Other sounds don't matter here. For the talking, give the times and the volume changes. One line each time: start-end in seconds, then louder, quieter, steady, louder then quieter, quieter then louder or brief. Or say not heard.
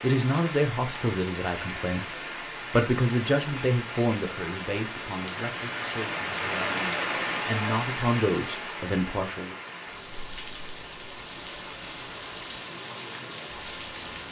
0.0-2.0 brief
2.7-9.6 quieter then louder.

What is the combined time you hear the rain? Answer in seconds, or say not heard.
14 s.